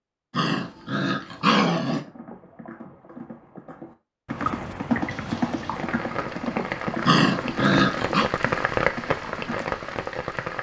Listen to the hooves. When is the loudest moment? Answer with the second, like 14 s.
5 s.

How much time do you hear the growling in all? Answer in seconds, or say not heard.
3 s.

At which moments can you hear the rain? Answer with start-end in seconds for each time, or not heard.
5.0-10.5.